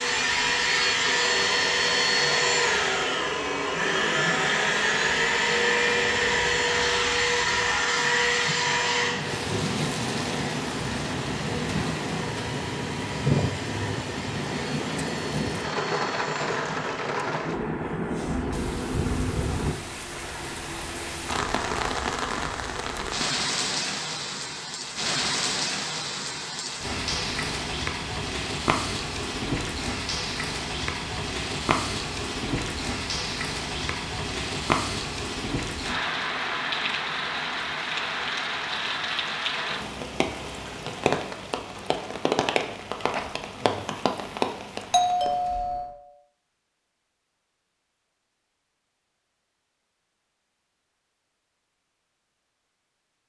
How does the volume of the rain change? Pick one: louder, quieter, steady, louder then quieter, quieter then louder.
louder.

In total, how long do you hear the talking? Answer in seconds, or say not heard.
not heard.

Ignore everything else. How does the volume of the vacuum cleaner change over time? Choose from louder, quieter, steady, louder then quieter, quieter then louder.
quieter.